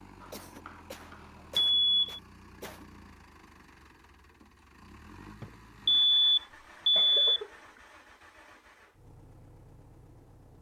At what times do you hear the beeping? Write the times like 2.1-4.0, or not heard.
1.7-2.2, 5.4-7.4.